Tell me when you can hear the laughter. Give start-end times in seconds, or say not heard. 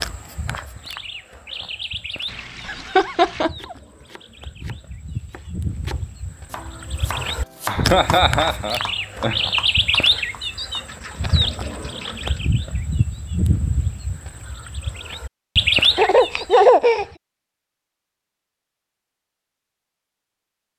2.6-3.8, 7.2-9.4, 15.9-17.1.